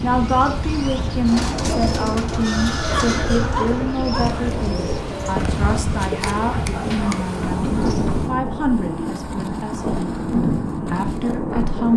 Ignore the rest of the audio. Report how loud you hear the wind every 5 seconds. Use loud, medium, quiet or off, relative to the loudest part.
medium, loud, loud.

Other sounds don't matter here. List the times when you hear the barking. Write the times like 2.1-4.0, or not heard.
2.9-4.5, 6.2-7.9.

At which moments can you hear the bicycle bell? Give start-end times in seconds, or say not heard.
not heard.